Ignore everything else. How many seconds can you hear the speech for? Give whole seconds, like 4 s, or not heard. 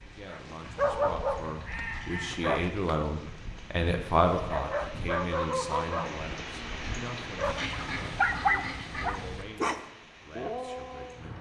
11 s.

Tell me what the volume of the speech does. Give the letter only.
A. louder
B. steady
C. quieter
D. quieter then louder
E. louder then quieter
E.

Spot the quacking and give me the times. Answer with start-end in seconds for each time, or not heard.
0.6-2.7, 7.4-9.4.